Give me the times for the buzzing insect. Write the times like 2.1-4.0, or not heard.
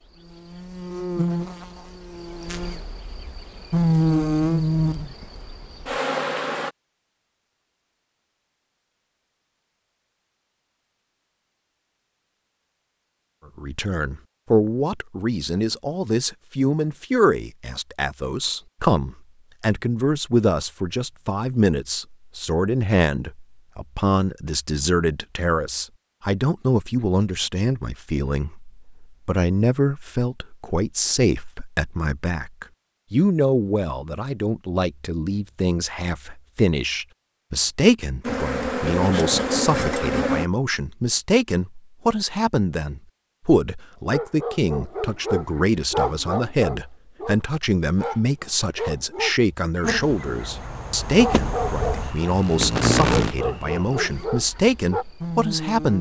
0.0-6.7, 38.2-40.5, 49.8-55.9.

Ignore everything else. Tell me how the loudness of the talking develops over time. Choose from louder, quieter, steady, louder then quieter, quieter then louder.
steady.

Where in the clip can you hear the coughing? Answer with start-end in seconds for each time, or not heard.
not heard.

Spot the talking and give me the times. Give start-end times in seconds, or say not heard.
13.6-55.9.